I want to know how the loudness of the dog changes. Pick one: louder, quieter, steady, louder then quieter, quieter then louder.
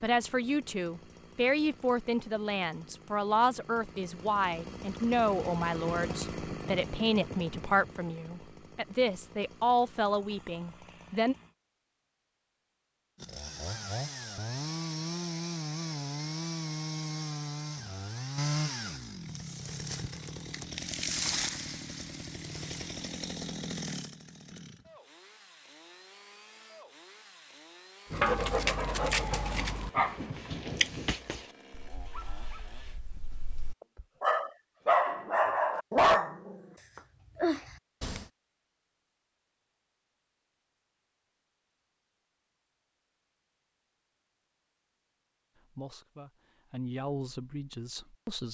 quieter then louder.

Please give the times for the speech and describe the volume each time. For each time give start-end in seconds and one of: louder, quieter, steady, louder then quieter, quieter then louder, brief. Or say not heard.
0.0-11.3 steady
45.8-48.4 brief.